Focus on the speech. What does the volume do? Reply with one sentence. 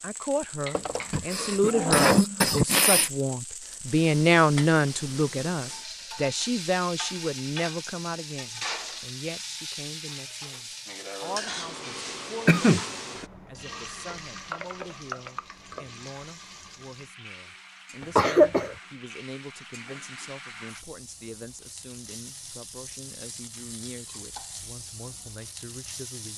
The volume of the speech goes down.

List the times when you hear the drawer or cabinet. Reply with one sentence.
You can hear the drawer or cabinet from 0.7 to 2.1 s.